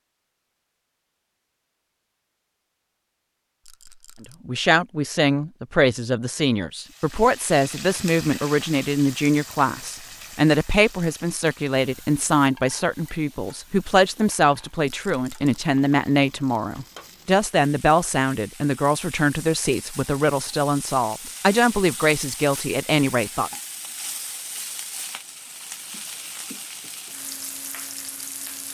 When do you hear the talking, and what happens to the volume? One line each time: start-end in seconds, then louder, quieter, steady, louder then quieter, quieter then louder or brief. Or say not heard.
4.5-23.5 steady.